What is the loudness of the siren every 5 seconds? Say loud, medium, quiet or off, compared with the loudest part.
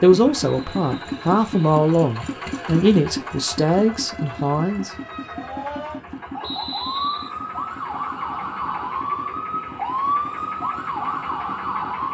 quiet, loud, loud.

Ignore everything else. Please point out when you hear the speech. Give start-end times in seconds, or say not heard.
0.0-4.9.